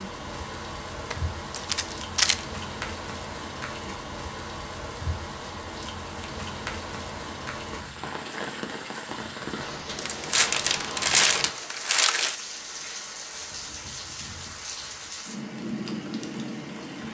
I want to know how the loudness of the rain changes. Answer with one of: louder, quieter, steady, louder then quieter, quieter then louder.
steady.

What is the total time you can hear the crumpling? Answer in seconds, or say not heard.
4 s.